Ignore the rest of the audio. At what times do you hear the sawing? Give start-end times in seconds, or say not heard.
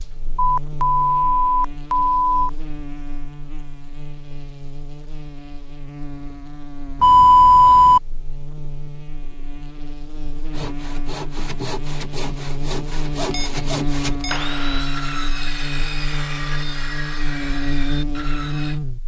10.5-18.8.